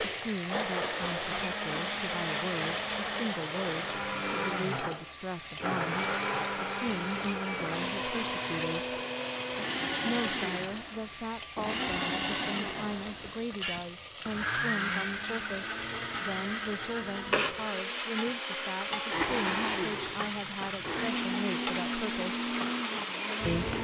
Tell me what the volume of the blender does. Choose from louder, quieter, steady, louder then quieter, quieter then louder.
steady.